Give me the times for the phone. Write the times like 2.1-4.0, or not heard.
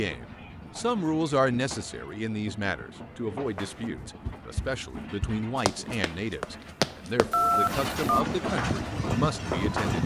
7.3-8.2.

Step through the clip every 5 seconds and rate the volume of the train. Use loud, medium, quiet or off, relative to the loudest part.
medium, loud.